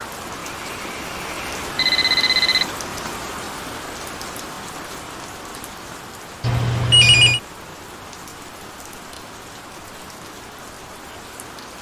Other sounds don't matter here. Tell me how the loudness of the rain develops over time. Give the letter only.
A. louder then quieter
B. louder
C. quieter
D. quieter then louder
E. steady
C.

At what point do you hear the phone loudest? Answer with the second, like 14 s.
7 s.